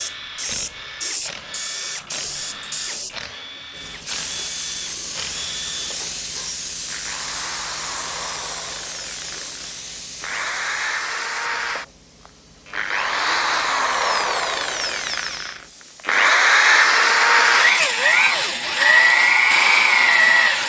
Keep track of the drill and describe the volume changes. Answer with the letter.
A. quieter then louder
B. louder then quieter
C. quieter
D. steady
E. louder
E.